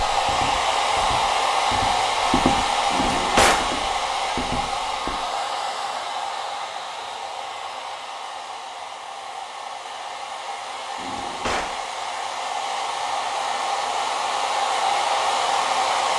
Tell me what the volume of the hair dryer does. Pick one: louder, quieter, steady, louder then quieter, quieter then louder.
quieter then louder.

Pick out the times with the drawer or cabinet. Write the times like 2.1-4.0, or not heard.
2.9-3.7, 10.9-11.8.